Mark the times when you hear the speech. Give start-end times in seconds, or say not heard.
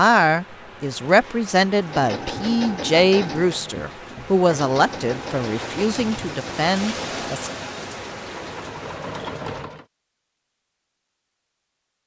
0.0-7.5.